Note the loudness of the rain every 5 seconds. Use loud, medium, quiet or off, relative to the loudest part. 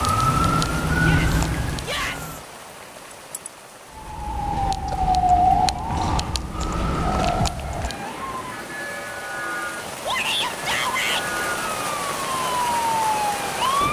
medium, medium, loud.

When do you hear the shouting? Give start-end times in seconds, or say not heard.
1.0-2.4, 10.0-11.2.